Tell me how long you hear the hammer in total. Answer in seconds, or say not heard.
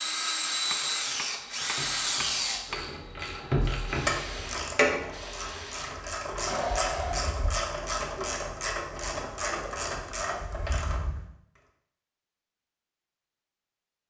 2 s.